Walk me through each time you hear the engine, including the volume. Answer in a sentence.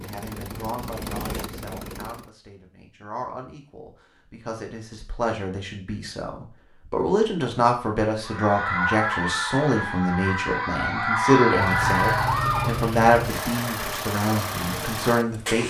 The engine can be heard briefly from 0.0 to 2.3 s; and from 11.6 to 15.6 s, at a steady volume.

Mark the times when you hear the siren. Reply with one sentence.
You can hear the siren from 8.2 to 12.8 s.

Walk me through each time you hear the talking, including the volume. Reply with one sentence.
You can hear the talking from 0.0 to 15.6 s, getting louder.